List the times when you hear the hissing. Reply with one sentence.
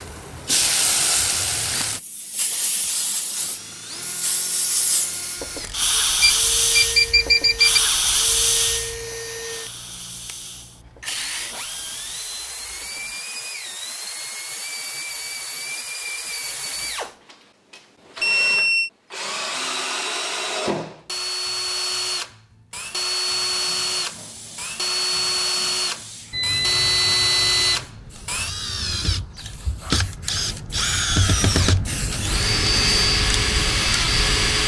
The hissing can be heard from 0.0 to 13.2 s and from 23.2 to 34.6 s.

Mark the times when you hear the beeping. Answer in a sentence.
You can hear the beeping from 6.2 to 7.8 s, from 18.2 to 18.9 s and from 26.3 to 27.9 s.